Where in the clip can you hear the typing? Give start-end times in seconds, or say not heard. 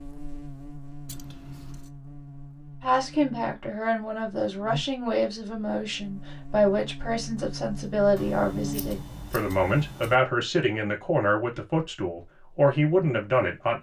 not heard.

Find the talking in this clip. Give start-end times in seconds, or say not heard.
2.8-13.7.